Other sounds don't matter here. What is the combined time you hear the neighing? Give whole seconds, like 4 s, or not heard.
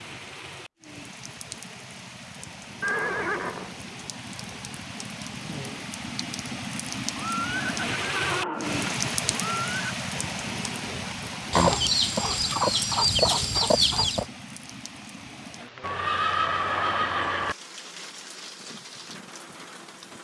5 s.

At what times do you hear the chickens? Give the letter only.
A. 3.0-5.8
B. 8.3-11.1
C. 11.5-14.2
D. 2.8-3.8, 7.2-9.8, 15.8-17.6
C.